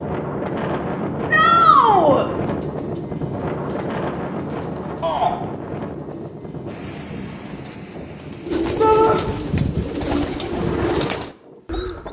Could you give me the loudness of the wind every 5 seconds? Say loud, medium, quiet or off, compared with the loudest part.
loud, medium, medium.